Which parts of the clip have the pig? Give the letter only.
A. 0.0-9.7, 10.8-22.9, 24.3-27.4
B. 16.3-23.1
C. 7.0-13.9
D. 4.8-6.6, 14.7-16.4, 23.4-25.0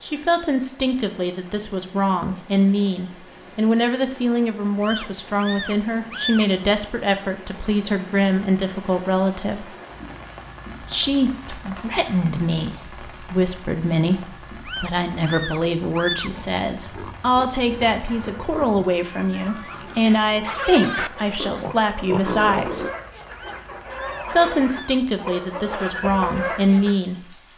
B.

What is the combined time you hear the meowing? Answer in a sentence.
The meowing can be heard for 5 seconds in total.